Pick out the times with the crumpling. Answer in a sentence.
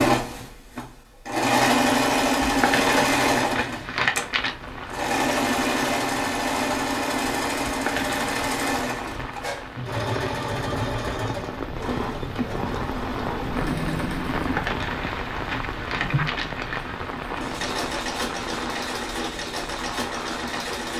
The crumpling can be heard from 2.4 to 4.5 s, from 7.7 to 8.4 s and from 14.3 to 16.9 s.